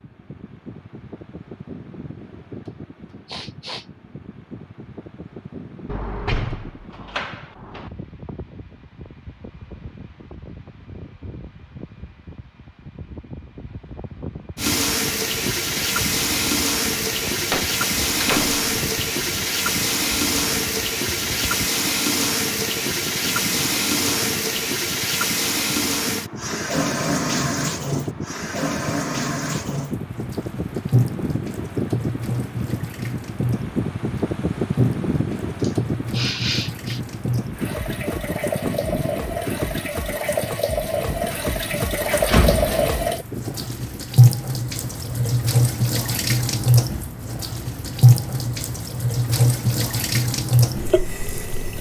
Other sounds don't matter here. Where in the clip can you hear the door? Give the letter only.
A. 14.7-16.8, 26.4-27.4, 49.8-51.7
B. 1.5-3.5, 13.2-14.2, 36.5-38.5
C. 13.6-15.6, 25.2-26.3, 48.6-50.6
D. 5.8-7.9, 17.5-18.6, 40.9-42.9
D.